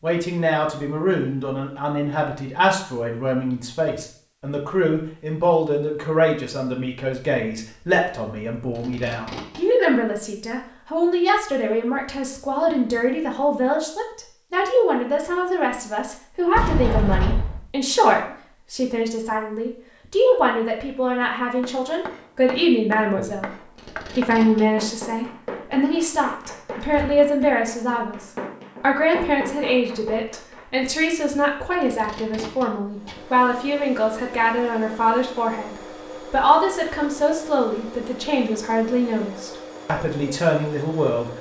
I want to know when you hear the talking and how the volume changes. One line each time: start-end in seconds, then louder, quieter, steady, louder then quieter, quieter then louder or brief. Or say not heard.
0.0-41.3 steady.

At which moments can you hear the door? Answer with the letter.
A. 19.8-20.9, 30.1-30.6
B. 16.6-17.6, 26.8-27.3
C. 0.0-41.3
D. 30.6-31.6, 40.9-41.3
B.